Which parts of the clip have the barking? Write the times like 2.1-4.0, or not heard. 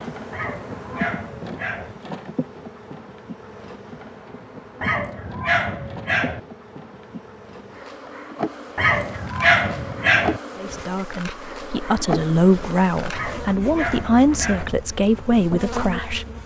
0.3-1.9, 4.8-6.4, 8.8-10.4, 13.1-14.8.